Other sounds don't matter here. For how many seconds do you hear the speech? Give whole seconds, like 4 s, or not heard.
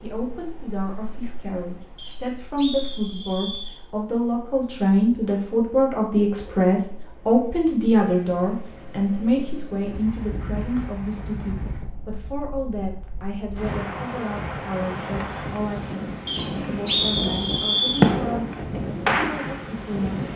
20 s.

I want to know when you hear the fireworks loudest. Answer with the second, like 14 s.
18 s.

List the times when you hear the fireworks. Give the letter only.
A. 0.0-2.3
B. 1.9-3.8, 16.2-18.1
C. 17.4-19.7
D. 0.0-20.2
C.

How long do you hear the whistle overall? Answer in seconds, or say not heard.
4 s.